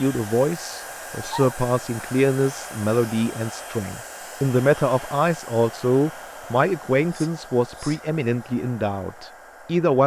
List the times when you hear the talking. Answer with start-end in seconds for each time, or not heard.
0.0-10.0.